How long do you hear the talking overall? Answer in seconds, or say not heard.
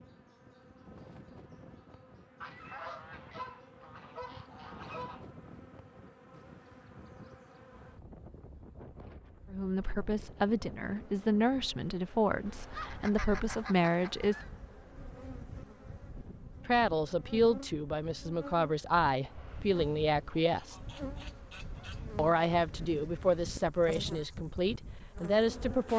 13 s.